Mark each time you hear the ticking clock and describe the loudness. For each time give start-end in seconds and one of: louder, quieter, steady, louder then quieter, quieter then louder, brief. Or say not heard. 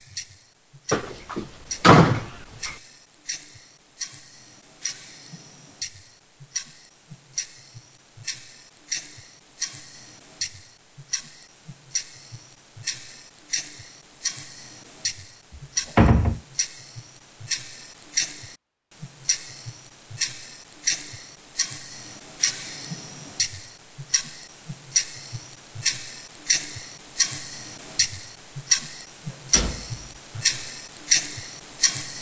0.0-32.1 louder.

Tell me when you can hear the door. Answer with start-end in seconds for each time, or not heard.
0.9-2.8, 15.9-16.4, 29.5-30.1.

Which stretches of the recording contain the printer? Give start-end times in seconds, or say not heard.
not heard.